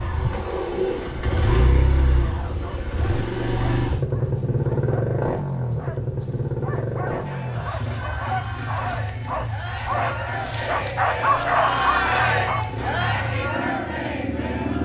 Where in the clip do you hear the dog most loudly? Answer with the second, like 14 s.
11 s.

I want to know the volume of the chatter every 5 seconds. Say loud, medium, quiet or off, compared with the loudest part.
off, medium, loud.